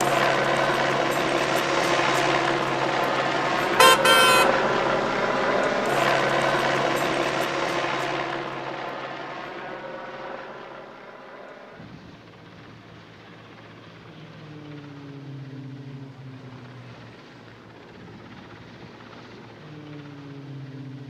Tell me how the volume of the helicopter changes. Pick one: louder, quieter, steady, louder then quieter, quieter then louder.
quieter.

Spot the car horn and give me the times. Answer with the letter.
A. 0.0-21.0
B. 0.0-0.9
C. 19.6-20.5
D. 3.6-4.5
D.